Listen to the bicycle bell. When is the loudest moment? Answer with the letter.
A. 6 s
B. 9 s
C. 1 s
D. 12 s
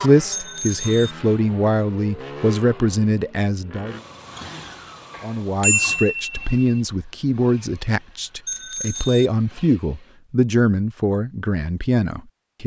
A.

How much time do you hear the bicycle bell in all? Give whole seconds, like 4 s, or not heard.
3 s.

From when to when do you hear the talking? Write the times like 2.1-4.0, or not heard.
0.0-4.0, 5.2-12.6.